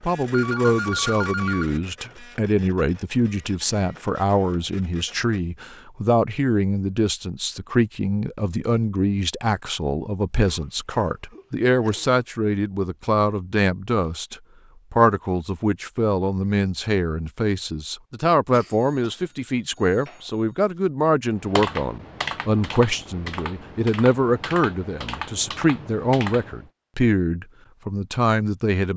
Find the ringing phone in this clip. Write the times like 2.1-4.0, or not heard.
0.3-1.8, 18.7-20.8.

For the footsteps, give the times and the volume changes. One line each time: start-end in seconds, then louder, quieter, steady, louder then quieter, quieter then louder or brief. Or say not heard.
not heard.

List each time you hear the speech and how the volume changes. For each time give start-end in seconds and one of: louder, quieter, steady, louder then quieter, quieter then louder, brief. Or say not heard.
0.0-28.9 steady.